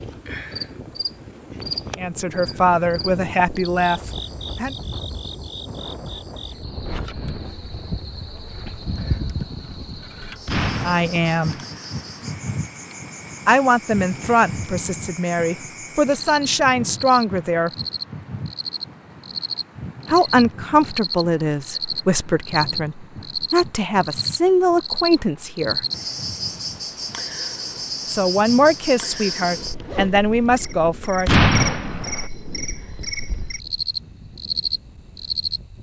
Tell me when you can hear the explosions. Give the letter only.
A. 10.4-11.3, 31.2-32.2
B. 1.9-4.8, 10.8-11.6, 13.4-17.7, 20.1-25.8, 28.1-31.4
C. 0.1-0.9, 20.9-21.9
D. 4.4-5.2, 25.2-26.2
A.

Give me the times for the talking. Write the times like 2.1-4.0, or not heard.
1.9-4.8, 10.8-11.6, 13.4-17.7, 20.1-25.8, 28.1-31.4.